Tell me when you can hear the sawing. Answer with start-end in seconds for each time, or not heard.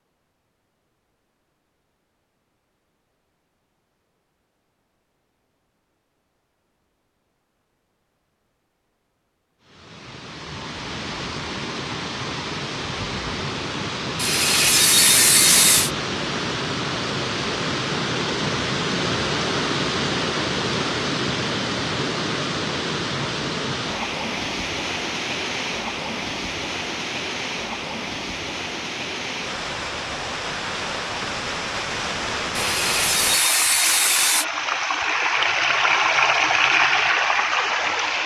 14.2-15.9, 32.5-34.5.